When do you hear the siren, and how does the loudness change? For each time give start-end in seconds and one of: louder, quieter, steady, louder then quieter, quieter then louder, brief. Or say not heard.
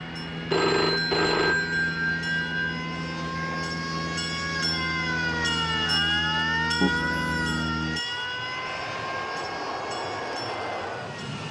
0.0-11.4 louder then quieter.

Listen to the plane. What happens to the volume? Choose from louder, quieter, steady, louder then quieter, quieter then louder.
steady.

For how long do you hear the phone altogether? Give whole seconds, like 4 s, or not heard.
3 s.